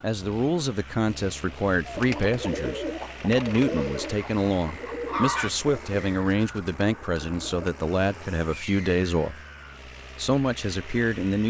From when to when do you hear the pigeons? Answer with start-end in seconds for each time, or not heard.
1.9-7.7.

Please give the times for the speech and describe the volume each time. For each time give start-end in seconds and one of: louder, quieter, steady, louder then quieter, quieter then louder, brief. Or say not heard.
0.0-9.4 steady
10.2-11.4 brief.